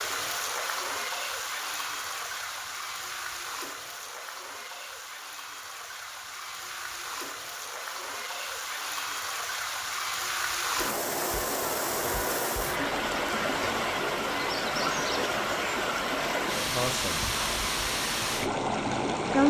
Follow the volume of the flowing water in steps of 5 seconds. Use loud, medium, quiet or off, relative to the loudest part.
medium, medium, loud, loud.